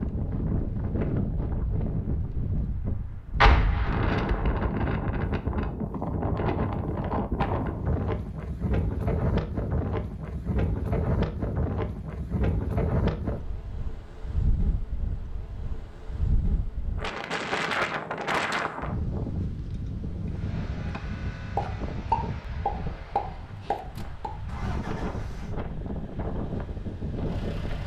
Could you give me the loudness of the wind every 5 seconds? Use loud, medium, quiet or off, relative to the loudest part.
loud, loud, loud, loud, medium, medium.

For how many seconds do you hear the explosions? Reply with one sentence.
You can hear the explosions for 4 seconds altogether.